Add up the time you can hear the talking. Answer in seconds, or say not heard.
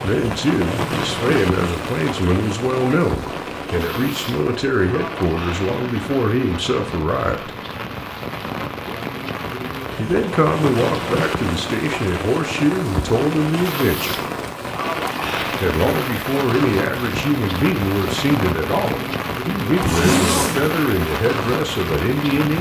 19 s.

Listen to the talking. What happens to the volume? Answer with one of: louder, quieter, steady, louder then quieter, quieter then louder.
steady.